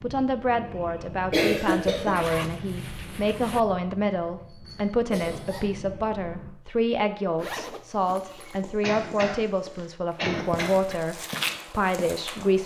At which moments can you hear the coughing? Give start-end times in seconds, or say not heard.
1.1-2.2, 5.1-5.7, 8.8-11.0.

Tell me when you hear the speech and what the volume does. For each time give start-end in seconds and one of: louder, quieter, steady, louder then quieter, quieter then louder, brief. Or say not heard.
0.0-12.6 steady.